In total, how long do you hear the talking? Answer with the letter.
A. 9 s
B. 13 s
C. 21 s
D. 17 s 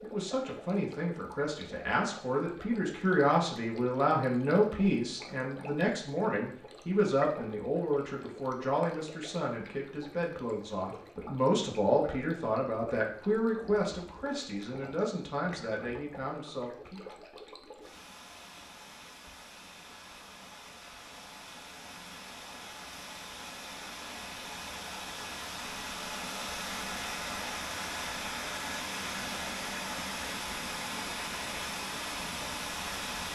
D.